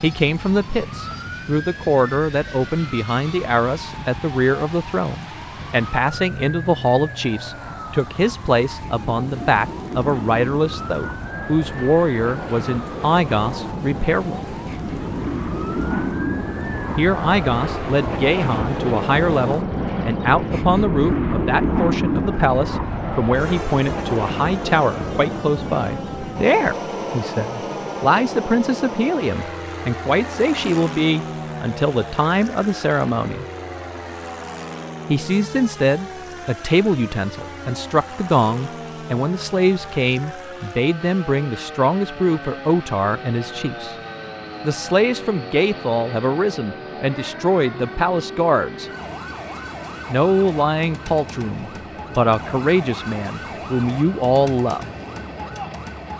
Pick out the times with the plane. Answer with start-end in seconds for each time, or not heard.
0.0-56.1.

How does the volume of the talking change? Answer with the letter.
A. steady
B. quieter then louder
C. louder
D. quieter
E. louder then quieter
A.